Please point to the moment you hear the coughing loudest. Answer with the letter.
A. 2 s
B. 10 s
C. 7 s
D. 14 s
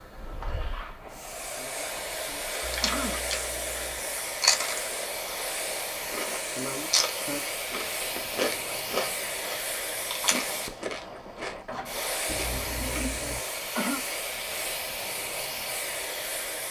D.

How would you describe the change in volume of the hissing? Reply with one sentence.
The volume of the hissing stays about the same.